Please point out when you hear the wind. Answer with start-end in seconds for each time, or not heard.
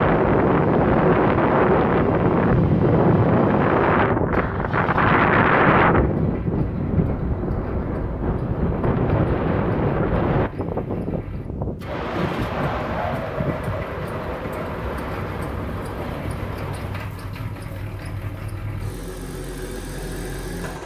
0.0-17.1.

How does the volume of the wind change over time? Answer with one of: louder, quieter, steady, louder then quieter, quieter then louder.
quieter.